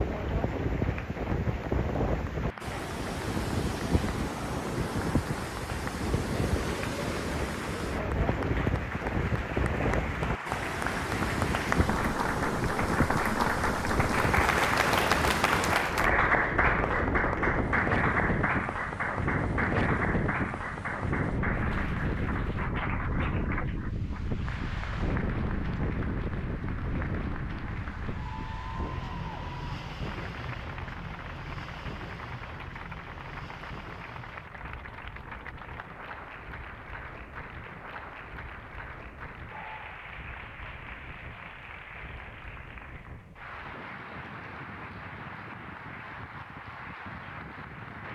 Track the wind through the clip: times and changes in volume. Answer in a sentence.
The wind can be heard from 0.0 to 48.0 s, getting quieter.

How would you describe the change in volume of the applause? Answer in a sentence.
The volume of the applause goes up, then down.